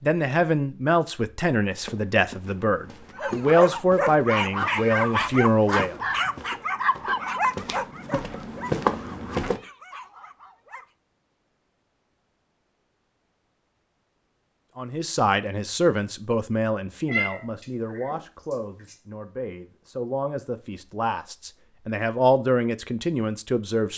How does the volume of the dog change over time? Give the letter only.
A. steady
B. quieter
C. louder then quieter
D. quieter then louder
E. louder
B.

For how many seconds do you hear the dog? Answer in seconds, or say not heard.
8 s.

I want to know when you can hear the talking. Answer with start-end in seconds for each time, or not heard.
0.0-6.0, 14.8-23.9.